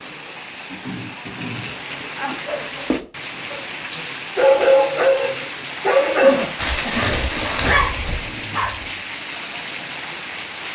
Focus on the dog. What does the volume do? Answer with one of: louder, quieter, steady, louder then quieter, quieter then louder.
louder then quieter.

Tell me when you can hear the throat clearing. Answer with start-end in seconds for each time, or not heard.
0.7-1.9, 6.2-7.1.